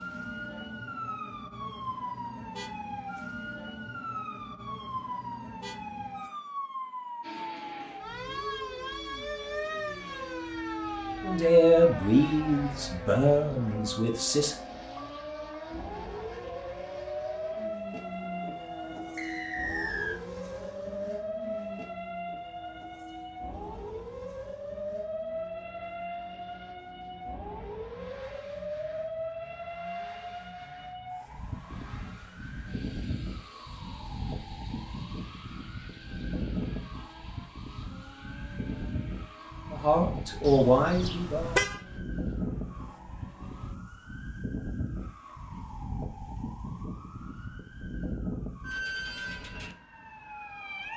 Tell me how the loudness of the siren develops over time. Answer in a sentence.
The volume of the siren stays about the same.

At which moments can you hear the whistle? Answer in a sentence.
The whistle can be heard from 19.1 to 20.2 s.